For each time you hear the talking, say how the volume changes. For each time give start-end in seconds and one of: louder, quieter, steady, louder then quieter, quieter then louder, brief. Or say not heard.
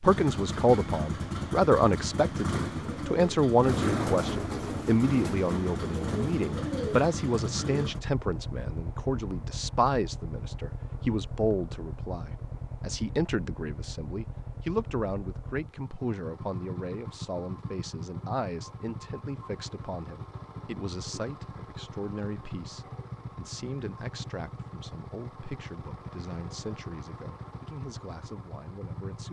0.0-29.2 quieter.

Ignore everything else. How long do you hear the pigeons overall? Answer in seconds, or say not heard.
5 s.